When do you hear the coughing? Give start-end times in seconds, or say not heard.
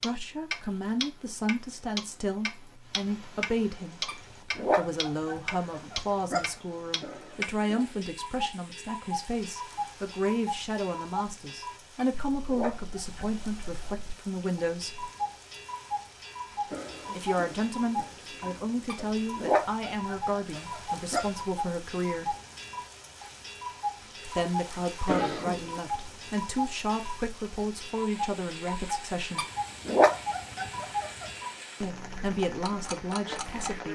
7.0-8.1, 16.6-19.1, 25.1-25.8.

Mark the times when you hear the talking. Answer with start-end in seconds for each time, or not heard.
0.0-15.1, 17.1-22.4, 24.2-29.4, 31.8-33.8.